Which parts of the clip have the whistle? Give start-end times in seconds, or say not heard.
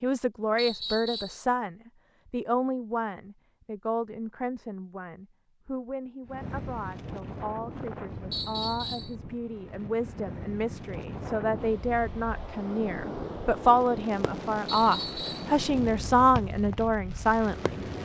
0.6-1.4, 8.3-9.2, 14.7-15.5.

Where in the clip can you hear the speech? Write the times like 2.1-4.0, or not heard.
0.0-17.9.